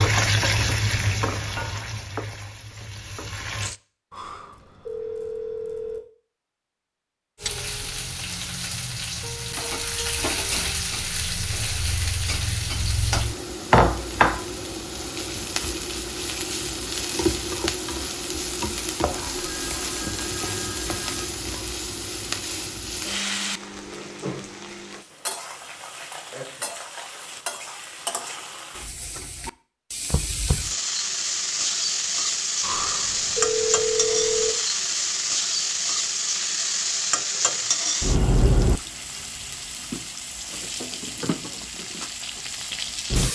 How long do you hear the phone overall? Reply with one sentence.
The phone can be heard for 6 seconds in total.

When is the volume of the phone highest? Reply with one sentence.
The loudest moment of the phone is at 34 seconds.